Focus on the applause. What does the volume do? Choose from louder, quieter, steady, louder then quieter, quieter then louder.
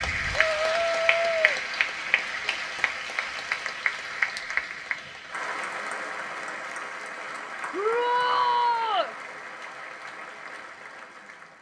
quieter.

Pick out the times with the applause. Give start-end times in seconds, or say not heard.
0.0-11.5.